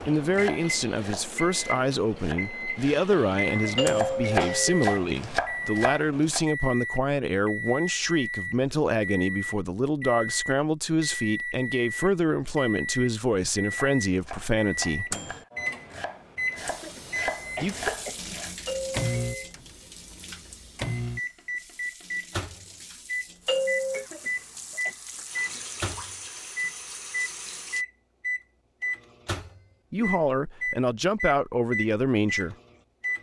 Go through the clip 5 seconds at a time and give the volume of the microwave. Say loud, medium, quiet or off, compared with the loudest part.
medium, loud, loud, loud, loud, loud, loud.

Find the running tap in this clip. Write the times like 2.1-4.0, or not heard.
16.6-27.9.